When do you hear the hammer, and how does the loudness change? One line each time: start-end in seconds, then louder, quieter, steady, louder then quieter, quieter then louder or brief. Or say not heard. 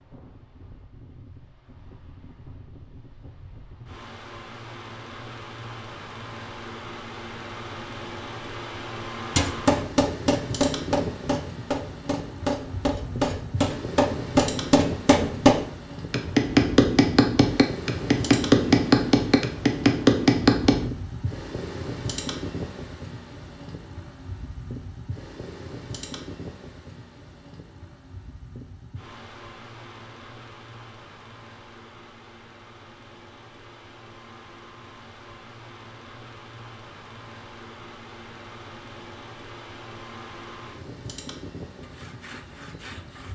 9.3-20.9 louder.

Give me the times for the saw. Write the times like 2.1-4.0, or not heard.
41.8-43.3.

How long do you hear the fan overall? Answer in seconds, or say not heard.
43 s.